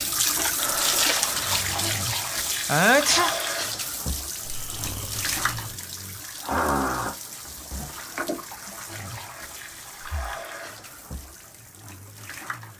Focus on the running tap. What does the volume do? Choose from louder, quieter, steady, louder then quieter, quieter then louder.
quieter.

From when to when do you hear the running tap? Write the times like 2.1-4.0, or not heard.
0.0-12.7.